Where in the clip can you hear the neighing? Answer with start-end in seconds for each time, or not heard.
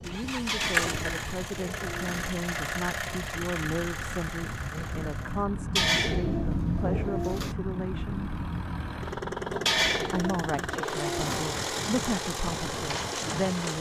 not heard.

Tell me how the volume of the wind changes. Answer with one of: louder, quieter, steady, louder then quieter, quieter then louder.
louder then quieter.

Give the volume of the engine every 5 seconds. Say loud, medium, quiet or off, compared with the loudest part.
loud, medium, loud.